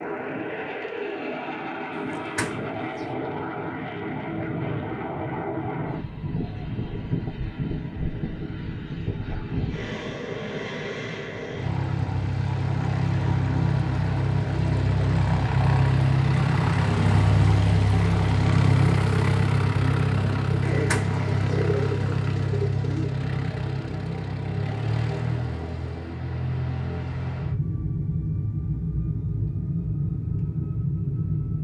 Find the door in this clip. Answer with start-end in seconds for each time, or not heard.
2.0-3.0, 20.7-21.6.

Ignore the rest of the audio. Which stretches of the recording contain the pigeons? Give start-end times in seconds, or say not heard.
20.6-23.1.